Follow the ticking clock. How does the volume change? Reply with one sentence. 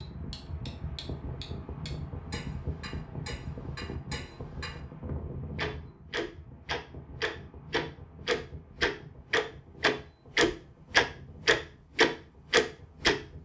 The loudness of the ticking clock goes up.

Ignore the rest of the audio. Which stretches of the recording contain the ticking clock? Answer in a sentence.
The ticking clock can be heard from 0.0 to 4.8 s and from 5.5 to 13.2 s.